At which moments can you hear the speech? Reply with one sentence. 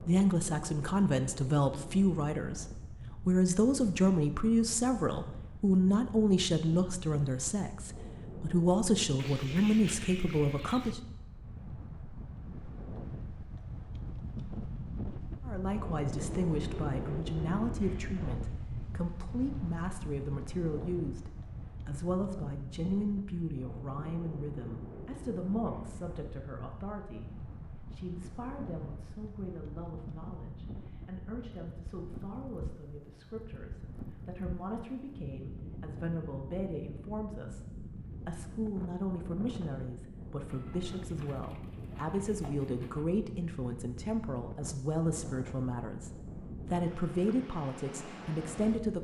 You can hear the speech from 0.0 to 11.0 s and from 15.4 to 48.9 s.